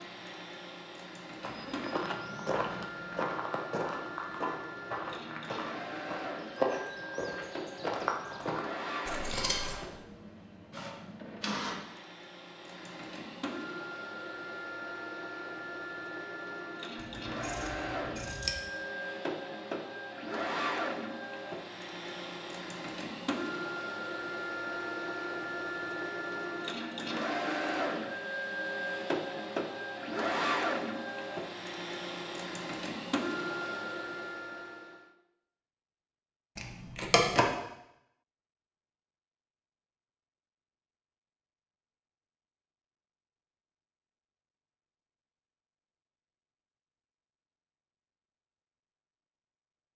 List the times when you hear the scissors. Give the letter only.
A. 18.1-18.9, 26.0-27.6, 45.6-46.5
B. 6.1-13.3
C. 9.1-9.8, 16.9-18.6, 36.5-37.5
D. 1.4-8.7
C.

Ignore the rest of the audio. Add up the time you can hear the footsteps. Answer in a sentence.
You can hear the footsteps for 7 seconds altogether.